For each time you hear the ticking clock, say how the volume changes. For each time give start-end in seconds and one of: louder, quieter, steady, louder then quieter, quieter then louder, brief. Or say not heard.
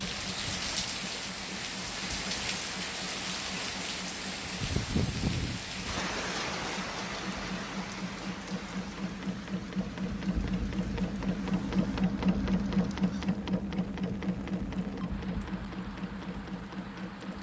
not heard.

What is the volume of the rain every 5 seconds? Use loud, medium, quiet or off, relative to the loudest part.
loud, loud, quiet, quiet.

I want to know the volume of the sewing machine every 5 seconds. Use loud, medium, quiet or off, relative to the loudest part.
quiet, medium, loud, medium.